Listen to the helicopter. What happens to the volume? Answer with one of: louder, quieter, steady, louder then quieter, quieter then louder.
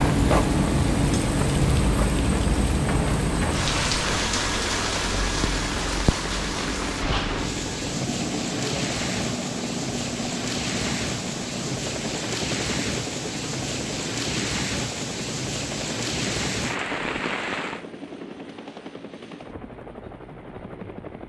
quieter.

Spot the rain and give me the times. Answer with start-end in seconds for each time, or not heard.
0.0-17.9.